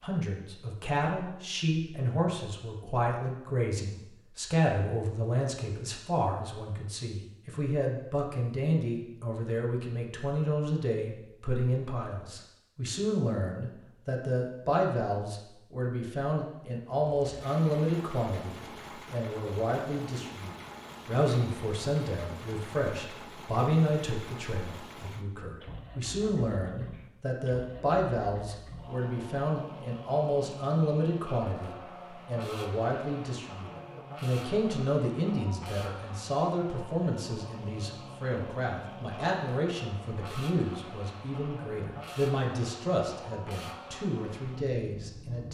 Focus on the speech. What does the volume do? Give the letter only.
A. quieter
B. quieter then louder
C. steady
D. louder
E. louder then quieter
C.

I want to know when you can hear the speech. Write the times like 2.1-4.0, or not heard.
0.0-45.5.